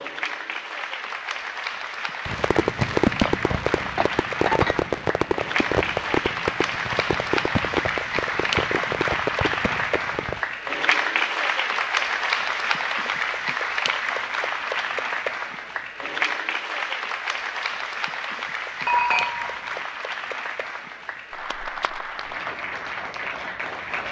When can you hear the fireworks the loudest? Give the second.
3 s.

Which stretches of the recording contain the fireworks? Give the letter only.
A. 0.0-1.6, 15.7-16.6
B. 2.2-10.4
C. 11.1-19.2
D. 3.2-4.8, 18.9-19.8
B.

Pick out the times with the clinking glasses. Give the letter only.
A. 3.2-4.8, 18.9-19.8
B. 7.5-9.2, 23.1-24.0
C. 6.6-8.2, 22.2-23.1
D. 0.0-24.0
A.